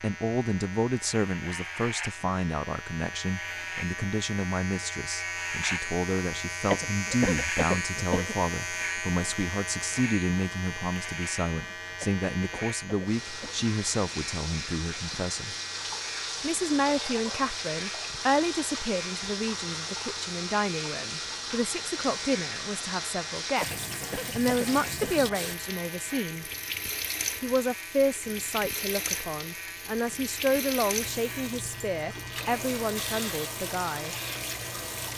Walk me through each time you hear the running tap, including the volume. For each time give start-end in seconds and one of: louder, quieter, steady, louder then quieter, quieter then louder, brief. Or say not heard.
13.1-35.1 steady.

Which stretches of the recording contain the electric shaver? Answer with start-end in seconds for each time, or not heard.
0.0-35.1.